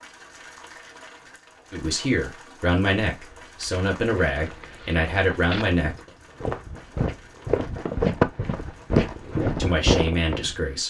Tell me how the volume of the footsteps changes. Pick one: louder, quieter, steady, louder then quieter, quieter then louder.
louder.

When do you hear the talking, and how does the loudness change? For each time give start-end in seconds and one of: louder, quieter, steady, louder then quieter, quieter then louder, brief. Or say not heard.
1.7-6.1 steady
9.6-10.8 brief.